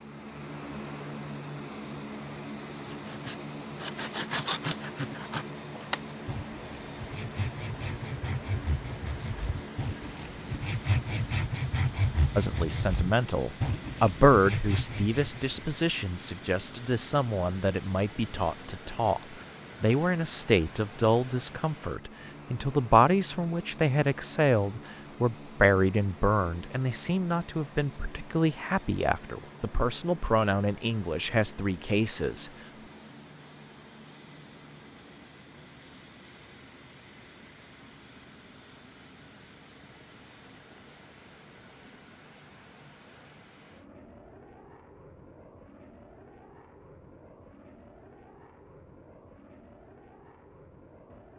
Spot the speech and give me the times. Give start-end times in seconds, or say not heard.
12.3-19.2, 19.8-32.5.